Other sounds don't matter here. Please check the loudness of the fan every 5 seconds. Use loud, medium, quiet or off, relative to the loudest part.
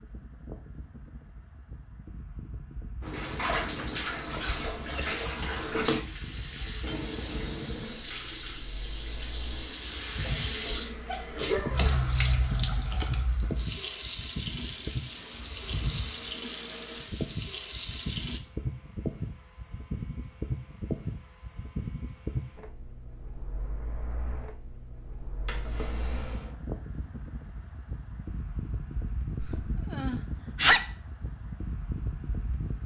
medium, medium, loud, loud, loud, loud, loud.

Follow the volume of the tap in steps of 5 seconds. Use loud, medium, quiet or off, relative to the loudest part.
loud, loud, loud, loud, off, off, off.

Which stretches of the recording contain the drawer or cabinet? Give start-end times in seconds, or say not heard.
6.8-8.1, 25.4-26.6.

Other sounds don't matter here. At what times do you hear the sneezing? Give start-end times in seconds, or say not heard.
4.9-6.0, 11.1-12.1, 29.4-30.8.